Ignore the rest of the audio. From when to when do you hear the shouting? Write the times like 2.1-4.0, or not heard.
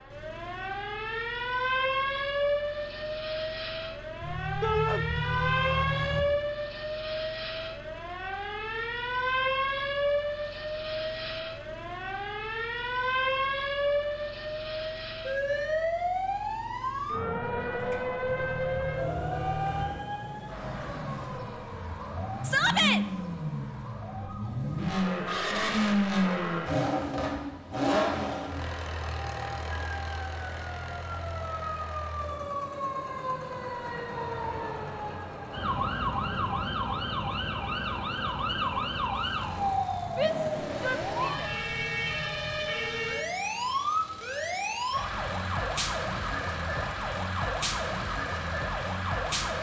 4.6-5.0, 22.4-23.0, 40.1-41.5.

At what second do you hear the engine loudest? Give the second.
26 s.